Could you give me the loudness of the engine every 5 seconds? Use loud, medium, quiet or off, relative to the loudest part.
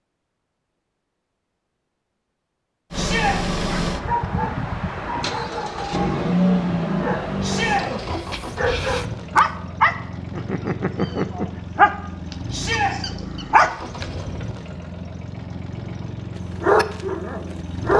loud, loud, medium, medium.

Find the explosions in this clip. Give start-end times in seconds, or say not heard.
not heard.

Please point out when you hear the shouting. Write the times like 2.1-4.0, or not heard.
2.9-3.4, 7.4-7.8, 12.5-12.9.